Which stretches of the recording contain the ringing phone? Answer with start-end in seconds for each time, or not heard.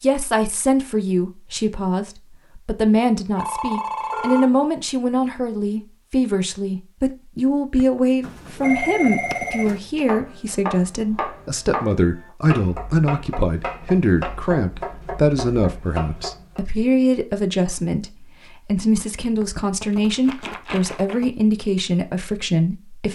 3.4-4.5, 7.8-9.8, 19.4-21.3.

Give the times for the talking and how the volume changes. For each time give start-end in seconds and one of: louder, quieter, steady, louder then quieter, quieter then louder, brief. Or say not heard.
0.0-23.1 steady.